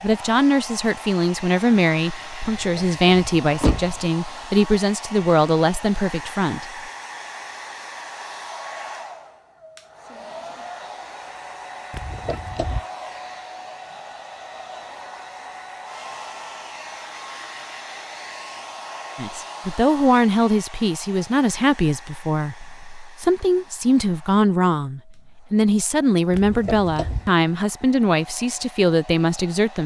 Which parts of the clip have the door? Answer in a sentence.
You can hear the door from 2.4 to 4.0 s, from 11.9 to 12.8 s and from 26.3 to 27.3 s.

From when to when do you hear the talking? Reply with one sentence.
The talking can be heard from 0.0 to 6.8 s and from 19.1 to 29.8 s.